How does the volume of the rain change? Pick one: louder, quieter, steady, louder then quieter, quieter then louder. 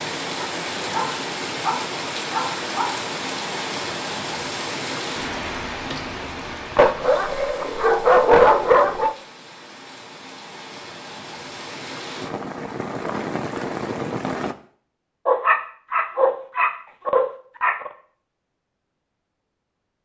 quieter then louder.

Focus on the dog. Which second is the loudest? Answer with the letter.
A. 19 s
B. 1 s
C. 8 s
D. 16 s
C.